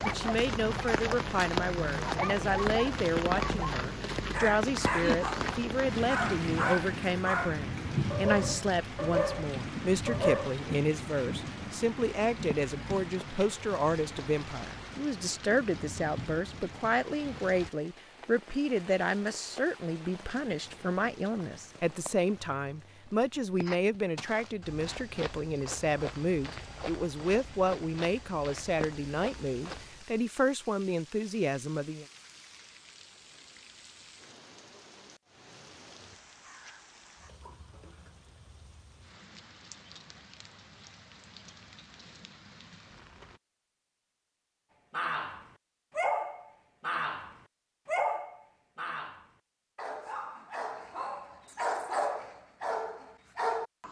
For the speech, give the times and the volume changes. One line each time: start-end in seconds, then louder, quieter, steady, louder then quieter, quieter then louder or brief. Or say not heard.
0.1-32.0 steady.